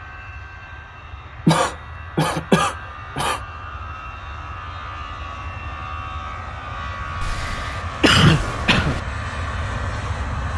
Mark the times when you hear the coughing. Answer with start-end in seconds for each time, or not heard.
1.4-3.4, 7.2-9.0.